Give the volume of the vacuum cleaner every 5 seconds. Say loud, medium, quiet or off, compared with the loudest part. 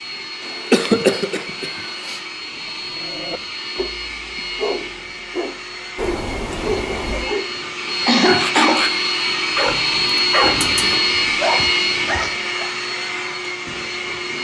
medium, loud, loud.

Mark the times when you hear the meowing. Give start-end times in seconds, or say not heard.
0.4-2.2, 6.0-7.3, 9.7-10.9.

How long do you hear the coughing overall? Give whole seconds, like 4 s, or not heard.
2 s.